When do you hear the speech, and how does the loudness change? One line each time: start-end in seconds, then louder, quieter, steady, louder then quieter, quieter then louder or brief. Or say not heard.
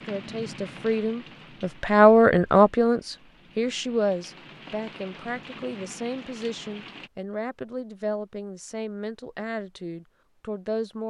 0.0-11.0 quieter.